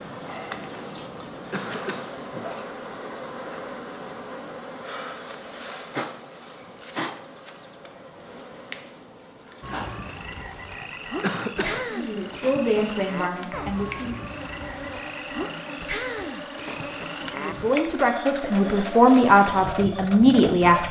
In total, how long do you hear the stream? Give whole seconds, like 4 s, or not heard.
not heard.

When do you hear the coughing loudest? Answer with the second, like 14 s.
11 s.